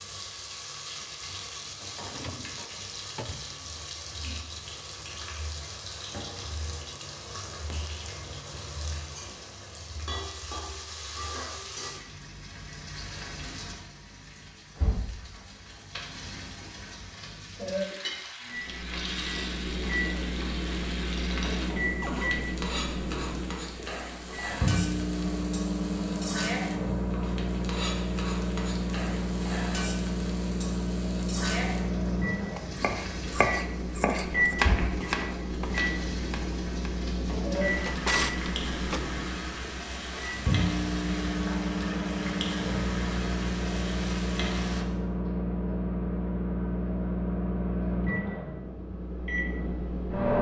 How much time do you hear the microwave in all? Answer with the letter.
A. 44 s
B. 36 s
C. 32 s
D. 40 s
C.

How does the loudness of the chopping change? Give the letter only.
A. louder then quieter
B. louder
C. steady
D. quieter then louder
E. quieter
E.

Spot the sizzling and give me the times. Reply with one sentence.
The sizzling can be heard from 0.0 to 44.9 s.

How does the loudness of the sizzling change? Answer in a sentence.
The loudness of the sizzling stays about the same.